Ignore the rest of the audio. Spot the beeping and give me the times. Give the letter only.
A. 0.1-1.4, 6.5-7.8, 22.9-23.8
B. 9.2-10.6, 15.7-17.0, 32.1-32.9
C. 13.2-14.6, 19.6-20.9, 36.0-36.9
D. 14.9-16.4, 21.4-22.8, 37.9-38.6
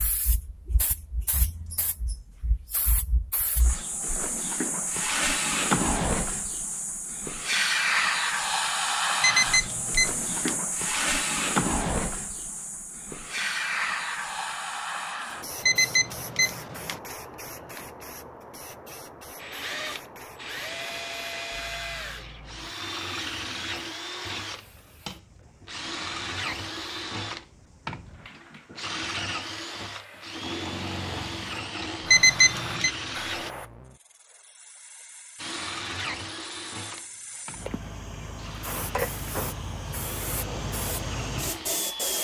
B.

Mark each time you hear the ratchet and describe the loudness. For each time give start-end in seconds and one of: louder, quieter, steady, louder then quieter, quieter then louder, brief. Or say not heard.
not heard.